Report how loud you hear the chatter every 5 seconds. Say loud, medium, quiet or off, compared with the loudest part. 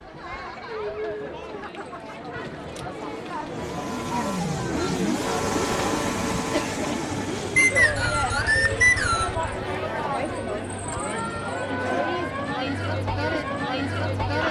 medium, loud, loud.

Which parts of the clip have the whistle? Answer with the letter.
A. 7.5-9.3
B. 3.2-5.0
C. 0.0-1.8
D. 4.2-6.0
A.